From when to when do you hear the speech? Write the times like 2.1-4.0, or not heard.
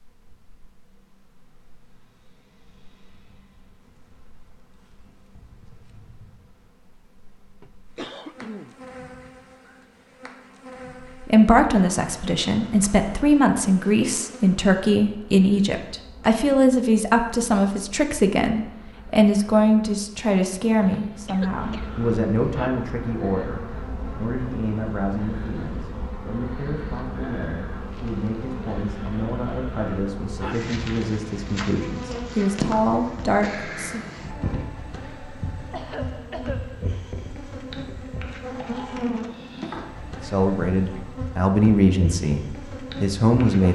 11.1-34.0, 40.2-43.7.